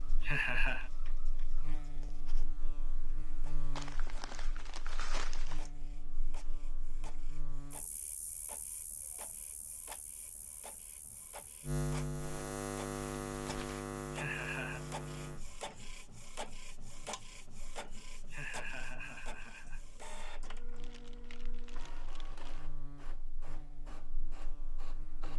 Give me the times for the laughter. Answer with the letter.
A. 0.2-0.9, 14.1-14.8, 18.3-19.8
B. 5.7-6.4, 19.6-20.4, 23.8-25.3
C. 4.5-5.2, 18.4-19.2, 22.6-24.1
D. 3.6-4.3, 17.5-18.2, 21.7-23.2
A.